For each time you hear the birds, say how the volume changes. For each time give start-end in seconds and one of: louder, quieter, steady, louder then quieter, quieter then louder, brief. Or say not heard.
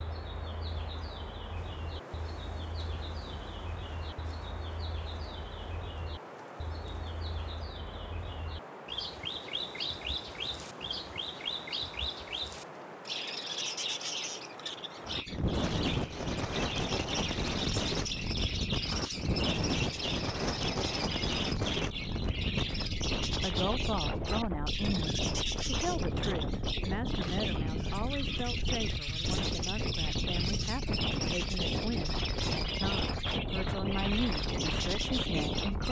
0.0-35.8 louder.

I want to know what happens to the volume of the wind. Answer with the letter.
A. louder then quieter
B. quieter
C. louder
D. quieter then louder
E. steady
C.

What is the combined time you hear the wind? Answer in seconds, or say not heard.
36 s.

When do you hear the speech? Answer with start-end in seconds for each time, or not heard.
23.2-35.8.